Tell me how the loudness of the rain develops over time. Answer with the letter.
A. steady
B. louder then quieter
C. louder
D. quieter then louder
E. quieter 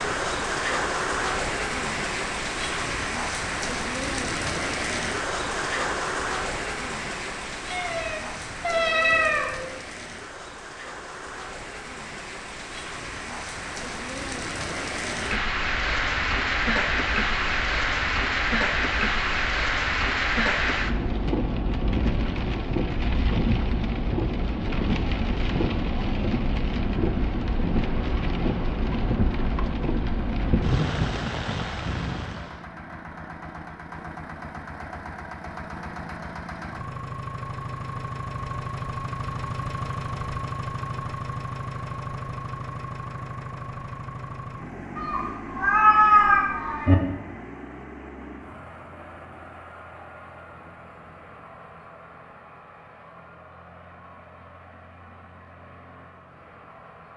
D.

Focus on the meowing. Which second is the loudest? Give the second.
46 s.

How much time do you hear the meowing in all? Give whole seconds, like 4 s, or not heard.
4 s.